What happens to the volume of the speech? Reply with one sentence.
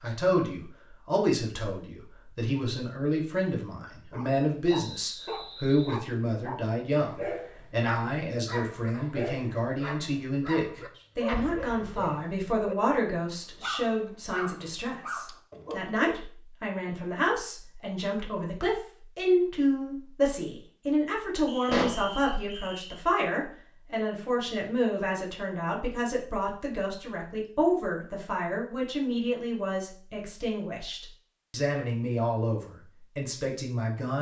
The volume of the speech stays about the same.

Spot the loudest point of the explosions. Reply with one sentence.
The loudest moment of the explosions is at 22 seconds.